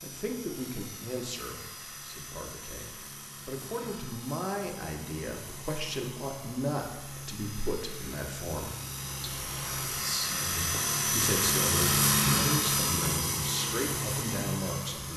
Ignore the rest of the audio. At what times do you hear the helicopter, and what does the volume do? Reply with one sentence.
The helicopter can be heard from 0.0 to 15.1 s, getting louder.